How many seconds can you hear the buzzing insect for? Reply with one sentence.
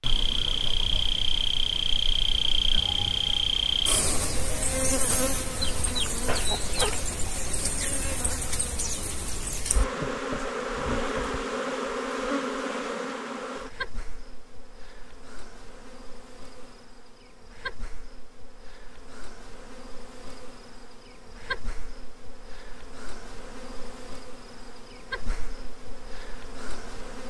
You can hear the buzzing insect for 27 seconds altogether.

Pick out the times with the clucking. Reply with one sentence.
You can hear the clucking from 5.6 to 7.2 s.